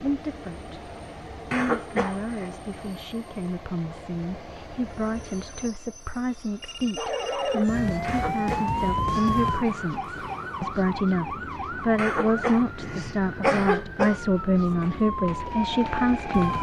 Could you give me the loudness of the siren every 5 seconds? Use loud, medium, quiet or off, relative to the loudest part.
off, loud, medium, loud.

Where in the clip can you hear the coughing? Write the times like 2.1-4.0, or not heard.
1.5-2.5, 8.0-8.7, 11.9-14.2.